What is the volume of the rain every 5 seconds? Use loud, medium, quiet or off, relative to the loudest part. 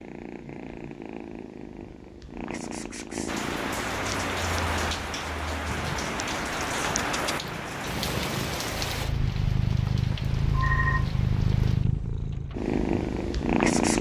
loud, loud, quiet.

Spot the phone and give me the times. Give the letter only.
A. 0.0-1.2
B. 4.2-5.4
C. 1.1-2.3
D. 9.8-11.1
D.